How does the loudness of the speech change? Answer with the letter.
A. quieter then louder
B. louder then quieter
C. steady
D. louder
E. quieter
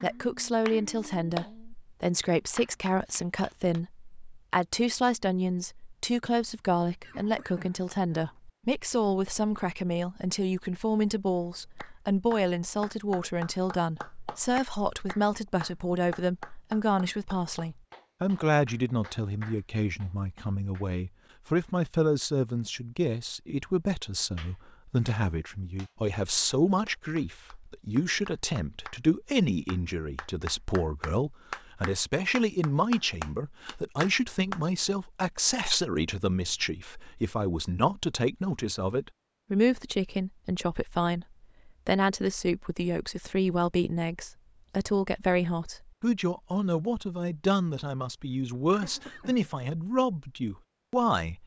C.